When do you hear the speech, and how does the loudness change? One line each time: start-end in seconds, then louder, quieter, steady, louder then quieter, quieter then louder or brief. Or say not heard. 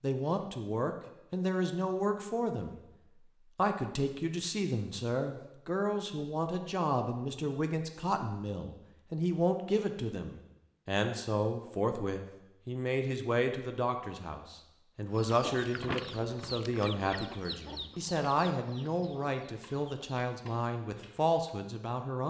0.0-2.8 brief
3.5-22.2 steady.